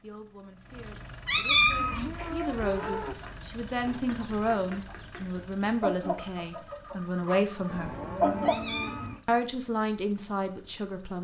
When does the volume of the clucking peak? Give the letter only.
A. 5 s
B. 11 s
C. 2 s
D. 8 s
D.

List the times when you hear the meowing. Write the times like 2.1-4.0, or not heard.
0.8-2.0, 8.0-9.2.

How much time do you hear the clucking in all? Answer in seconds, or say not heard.
7 s.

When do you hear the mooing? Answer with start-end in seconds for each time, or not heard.
1.3-3.1, 7.7-9.2.